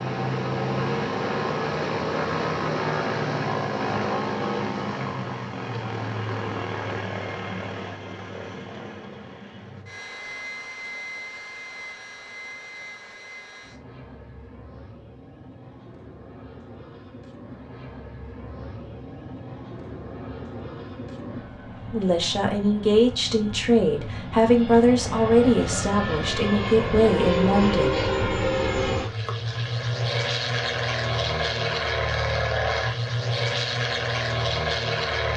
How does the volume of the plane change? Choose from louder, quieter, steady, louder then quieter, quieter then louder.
quieter then louder.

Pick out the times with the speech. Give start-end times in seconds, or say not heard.
21.9-27.9.